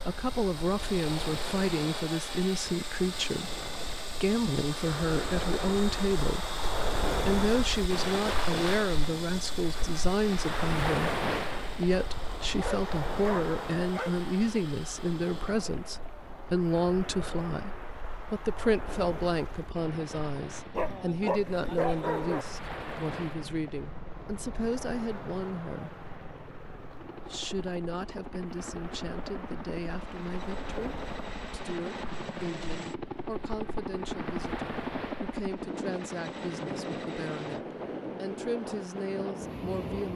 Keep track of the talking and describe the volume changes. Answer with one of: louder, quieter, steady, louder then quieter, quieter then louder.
quieter.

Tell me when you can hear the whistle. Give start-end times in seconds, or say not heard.
not heard.